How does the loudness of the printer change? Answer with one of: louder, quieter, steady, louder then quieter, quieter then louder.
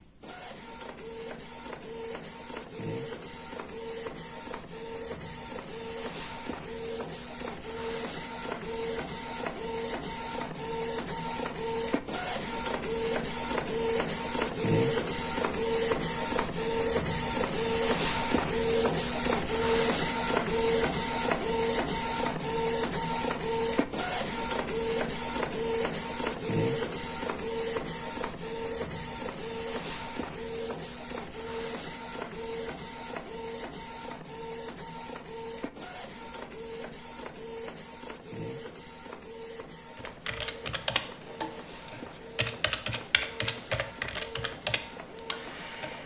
louder then quieter.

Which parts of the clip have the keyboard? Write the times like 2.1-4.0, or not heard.
40.0-46.0.